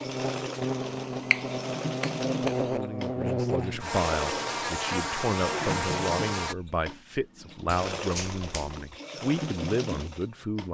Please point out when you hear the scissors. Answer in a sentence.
The scissors can't be heard in this clip.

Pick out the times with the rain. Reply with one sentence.
You can't hear the rain here.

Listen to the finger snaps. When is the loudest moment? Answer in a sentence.
The loudest moment of the finger snaps is at 1 second.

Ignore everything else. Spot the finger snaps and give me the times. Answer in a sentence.
You can hear the finger snaps from 0.8 to 2.8 s and from 7.7 to 8.9 s.